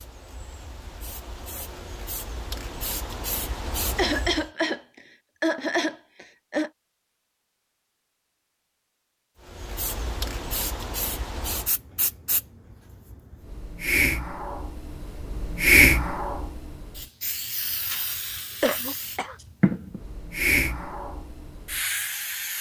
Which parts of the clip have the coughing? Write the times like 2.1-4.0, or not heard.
4.0-4.8, 5.4-6.7, 18.6-19.4.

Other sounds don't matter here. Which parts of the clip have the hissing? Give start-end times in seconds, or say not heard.
0.0-4.5, 9.4-22.5.